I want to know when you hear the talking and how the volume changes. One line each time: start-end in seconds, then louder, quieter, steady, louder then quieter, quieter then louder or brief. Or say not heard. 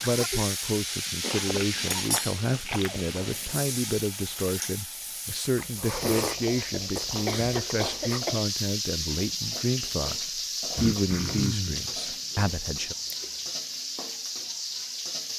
0.0-12.9 steady.